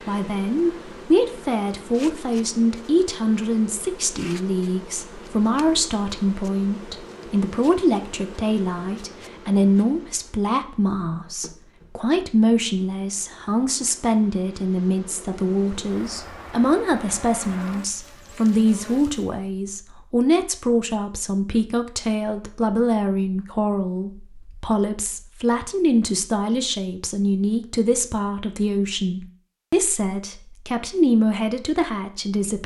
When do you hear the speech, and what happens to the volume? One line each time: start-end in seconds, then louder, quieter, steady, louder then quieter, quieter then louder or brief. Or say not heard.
0.1-32.6 steady.